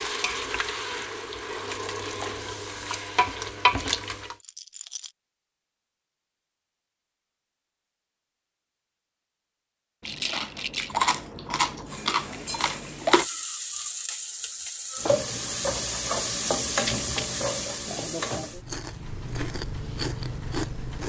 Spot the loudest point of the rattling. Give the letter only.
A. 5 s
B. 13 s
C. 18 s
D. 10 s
D.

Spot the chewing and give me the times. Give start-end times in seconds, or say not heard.
10.0-13.2, 18.5-21.0.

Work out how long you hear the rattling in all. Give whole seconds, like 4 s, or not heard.
2 s.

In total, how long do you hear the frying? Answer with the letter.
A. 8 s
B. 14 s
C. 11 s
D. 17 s
C.